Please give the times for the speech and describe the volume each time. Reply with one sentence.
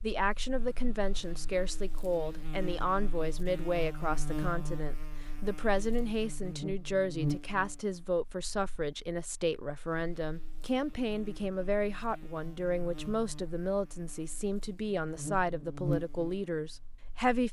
You can hear the speech from 0.0 to 17.4 s, at a steady volume.